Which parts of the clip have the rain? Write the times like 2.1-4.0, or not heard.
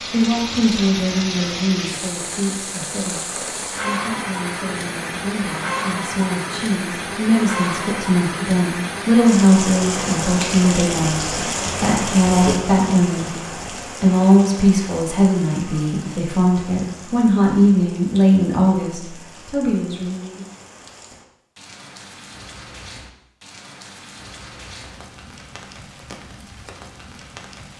0.0-27.7.